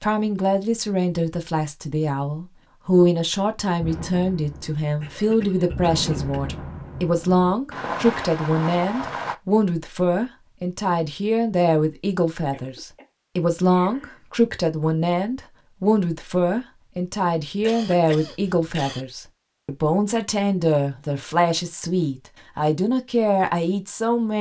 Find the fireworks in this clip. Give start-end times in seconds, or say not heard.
3.8-9.3.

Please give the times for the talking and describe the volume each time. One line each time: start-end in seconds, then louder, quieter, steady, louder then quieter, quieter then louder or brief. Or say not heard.
0.0-24.3 steady.